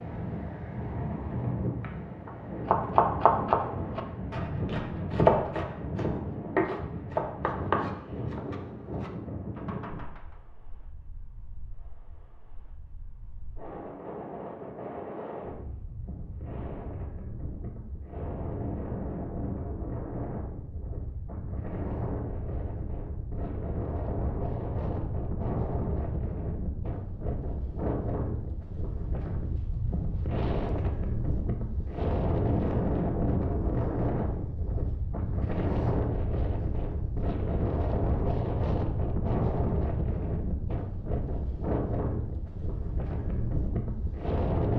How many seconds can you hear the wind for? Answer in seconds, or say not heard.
45 s.